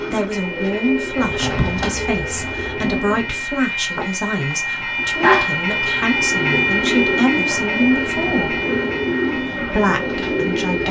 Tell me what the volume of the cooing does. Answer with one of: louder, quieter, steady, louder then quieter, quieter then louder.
steady.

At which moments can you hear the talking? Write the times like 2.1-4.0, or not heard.
0.1-8.6, 9.6-10.8.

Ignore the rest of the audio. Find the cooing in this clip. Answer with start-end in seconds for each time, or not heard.
0.0-3.5, 5.1-10.8.